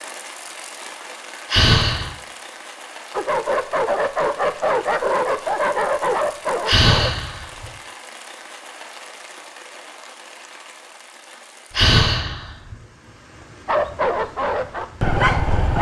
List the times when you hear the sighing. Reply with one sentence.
The sighing can be heard from 1.5 to 2.1 s, from 6.7 to 7.7 s and from 11.7 to 12.8 s.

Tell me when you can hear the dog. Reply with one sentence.
You can hear the dog from 3.1 to 7.1 s and from 13.7 to 15.7 s.